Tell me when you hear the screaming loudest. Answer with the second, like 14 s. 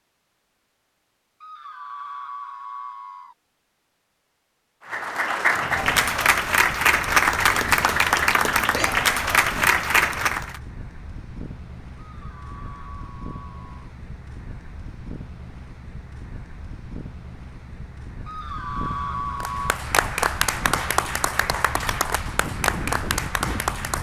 19 s.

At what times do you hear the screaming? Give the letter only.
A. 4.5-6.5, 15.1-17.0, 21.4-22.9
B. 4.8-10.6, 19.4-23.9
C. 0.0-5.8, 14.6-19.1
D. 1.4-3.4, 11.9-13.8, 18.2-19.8
D.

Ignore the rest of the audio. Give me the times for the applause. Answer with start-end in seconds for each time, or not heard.
4.8-10.6, 19.4-23.9.